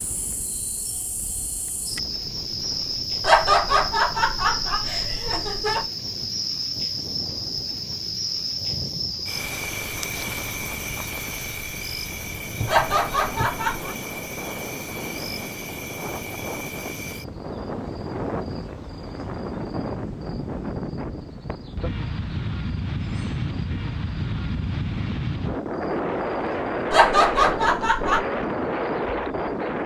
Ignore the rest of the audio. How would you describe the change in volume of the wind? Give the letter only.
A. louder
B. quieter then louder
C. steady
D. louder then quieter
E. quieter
A.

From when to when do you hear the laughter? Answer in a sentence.
You can hear the laughter from 3.2 to 5.8 s, from 12.7 to 13.9 s and from 26.9 to 28.2 s.